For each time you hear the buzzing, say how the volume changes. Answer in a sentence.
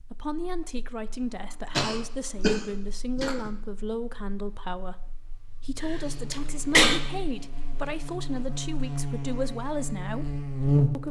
The buzzing can be heard from 0.0 to 11.0 s, getting louder.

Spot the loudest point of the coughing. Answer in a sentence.
The loudest moment of the coughing is at 7 seconds.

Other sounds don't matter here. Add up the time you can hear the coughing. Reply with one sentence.
You can hear the coughing for 3 seconds altogether.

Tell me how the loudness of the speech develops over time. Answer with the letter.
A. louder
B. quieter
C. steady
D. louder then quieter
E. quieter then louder
C.